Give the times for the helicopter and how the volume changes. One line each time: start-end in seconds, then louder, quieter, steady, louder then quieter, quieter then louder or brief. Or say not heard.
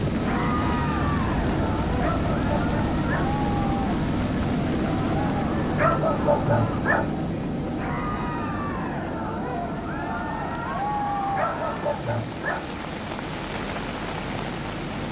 0.0-15.0 quieter.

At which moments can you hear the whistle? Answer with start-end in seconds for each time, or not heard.
not heard.